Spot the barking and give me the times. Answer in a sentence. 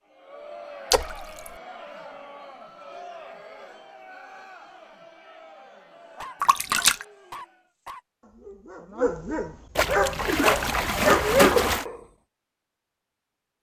You can hear the barking from 5.9 to 12.0 s.